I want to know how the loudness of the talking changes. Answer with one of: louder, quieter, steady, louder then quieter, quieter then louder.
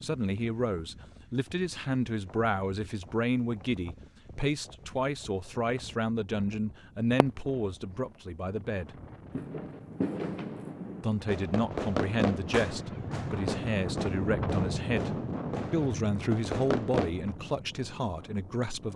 steady.